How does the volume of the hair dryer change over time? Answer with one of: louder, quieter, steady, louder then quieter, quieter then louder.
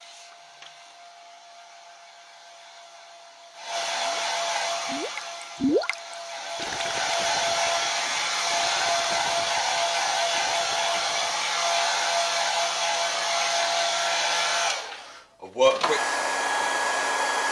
louder.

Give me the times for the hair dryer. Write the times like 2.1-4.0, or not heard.
0.0-17.4.